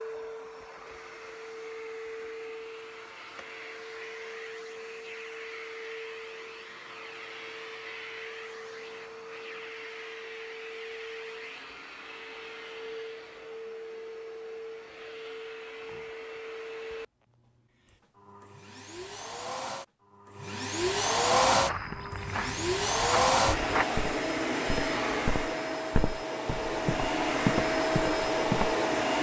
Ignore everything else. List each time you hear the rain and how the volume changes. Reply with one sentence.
You can't hear the rain here.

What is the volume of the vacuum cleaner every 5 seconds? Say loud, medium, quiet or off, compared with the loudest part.
quiet, quiet, quiet, quiet, loud, loud.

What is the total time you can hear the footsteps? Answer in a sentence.
The footsteps can be heard for 7 seconds in total.